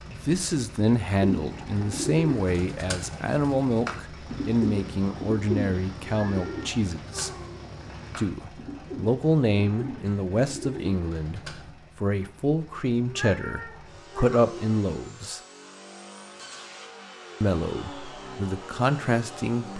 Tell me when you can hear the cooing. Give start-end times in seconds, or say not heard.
1.1-11.7.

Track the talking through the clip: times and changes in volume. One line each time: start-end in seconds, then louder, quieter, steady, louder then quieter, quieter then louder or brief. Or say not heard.
0.1-7.3 steady
8.2-15.4 quieter then louder
17.4-19.7 brief.